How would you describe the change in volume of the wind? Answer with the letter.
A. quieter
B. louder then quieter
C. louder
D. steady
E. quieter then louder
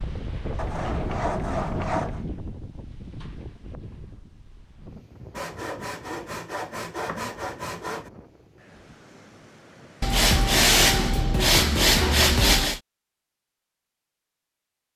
A.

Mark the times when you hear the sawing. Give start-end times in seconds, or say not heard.
0.6-2.2, 5.3-8.1, 10.0-12.8.